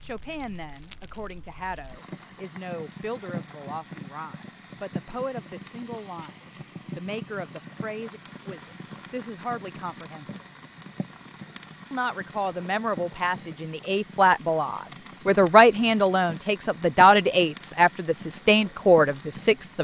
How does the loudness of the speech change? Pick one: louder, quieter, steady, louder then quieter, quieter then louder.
louder.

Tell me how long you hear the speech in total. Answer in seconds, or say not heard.
18 s.